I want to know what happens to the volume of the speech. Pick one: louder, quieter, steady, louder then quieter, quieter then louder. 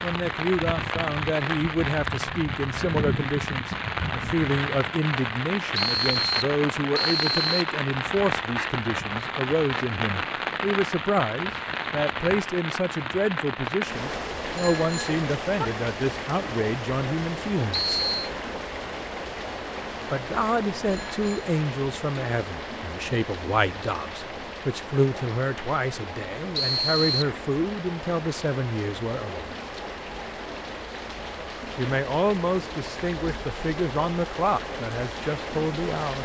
steady.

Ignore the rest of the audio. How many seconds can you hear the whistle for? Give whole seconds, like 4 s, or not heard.
3 s.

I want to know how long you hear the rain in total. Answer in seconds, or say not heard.
36 s.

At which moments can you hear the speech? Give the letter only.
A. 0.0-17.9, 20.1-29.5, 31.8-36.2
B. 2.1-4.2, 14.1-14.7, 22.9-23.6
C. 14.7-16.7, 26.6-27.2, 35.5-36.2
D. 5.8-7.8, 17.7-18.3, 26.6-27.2
A.